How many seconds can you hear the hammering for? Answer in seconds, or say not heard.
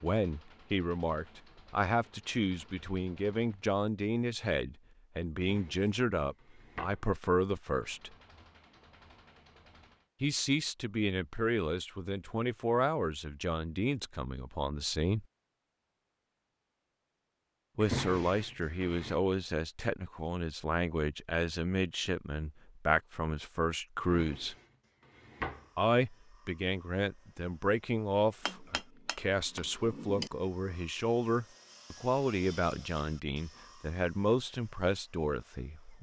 2 s.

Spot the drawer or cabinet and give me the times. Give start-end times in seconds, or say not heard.
5.5-7.0, 17.8-19.2, 24.1-25.6.